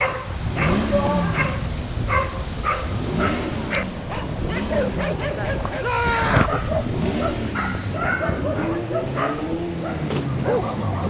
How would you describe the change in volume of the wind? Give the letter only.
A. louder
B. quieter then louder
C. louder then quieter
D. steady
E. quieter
D.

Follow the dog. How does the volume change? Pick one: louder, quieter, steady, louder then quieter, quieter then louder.
steady.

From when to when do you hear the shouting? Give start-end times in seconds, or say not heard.
0.8-1.4, 5.8-6.4.